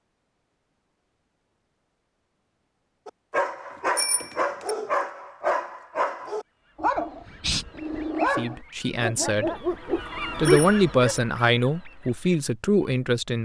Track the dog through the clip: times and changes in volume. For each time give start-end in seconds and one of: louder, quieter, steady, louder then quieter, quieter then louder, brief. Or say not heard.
3.0-11.2 steady.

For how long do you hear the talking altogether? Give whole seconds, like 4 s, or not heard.
4 s.